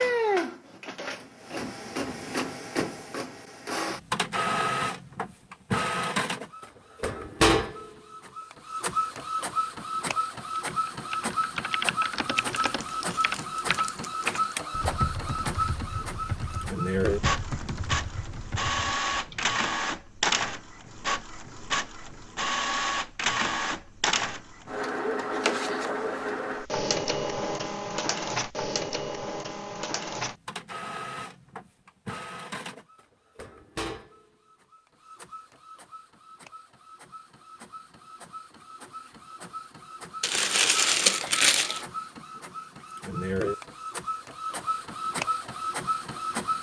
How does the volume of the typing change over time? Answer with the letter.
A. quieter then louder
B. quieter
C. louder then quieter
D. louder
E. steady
B.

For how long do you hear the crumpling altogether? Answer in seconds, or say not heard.
4 s.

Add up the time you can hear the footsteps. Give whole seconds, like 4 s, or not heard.
not heard.